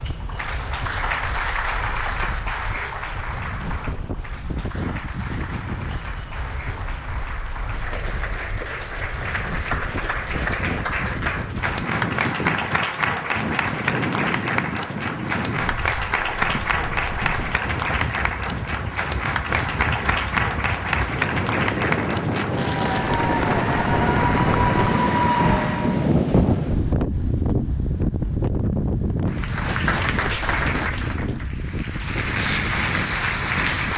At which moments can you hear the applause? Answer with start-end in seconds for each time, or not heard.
0.0-26.1, 29.2-33.9.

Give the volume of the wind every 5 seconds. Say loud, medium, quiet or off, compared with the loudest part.
quiet, quiet, medium, medium, loud, loud, medium.